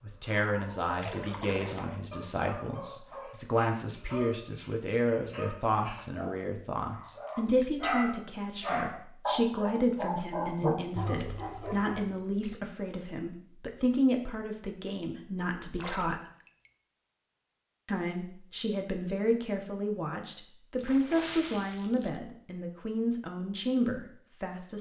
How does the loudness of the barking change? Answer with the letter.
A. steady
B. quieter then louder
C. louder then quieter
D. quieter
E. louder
E.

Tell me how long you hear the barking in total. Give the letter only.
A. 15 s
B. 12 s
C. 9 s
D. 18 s
B.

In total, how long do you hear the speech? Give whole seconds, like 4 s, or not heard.
23 s.